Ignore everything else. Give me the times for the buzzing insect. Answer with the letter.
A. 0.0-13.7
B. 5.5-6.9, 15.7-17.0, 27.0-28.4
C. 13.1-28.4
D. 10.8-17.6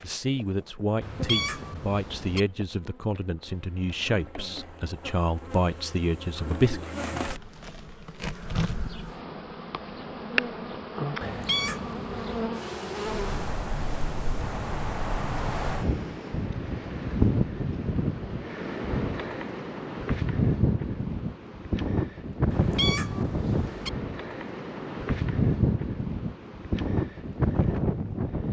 A.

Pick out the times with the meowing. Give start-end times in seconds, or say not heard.
1.0-2.4, 11.2-12.5, 22.5-23.9.